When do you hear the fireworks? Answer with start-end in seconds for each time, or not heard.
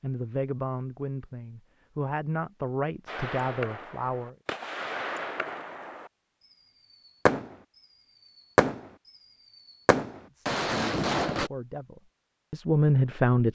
3.0-11.5.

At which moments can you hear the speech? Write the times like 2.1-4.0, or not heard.
0.0-4.3, 10.3-13.5.